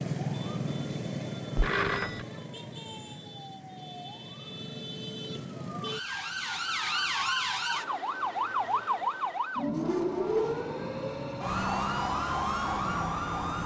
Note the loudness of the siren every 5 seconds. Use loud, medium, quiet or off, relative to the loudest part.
medium, loud, loud.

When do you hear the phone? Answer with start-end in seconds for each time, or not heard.
1.6-2.2.